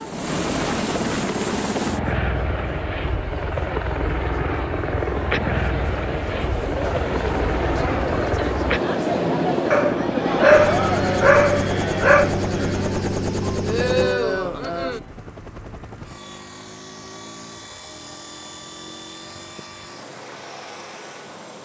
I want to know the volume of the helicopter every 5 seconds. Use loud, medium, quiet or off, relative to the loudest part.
loud, loud, loud, quiet, quiet.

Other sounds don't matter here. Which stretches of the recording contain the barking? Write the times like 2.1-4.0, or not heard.
9.7-12.3.